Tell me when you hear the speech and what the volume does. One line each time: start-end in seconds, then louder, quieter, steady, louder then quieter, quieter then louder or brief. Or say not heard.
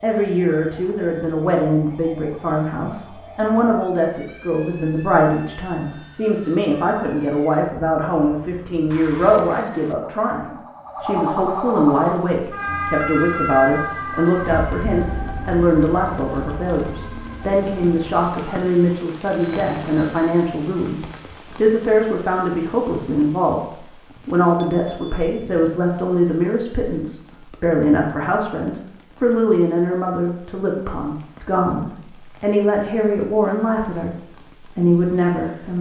0.0-23.6 steady
24.2-35.7 steady.